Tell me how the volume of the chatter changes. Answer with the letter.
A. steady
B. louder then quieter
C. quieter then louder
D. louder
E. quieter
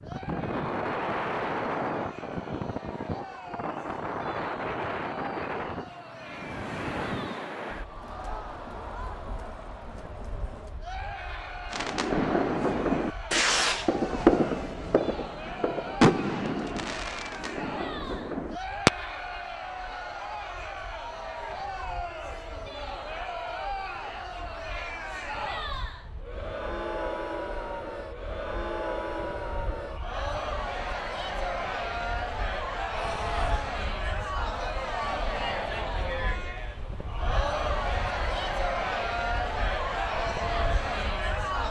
D.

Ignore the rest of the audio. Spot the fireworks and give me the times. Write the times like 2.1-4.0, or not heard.
11.7-18.9.